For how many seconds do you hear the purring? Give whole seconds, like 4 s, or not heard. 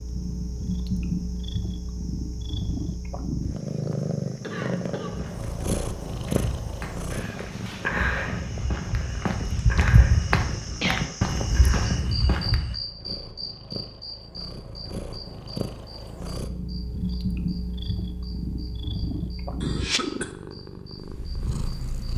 22 s.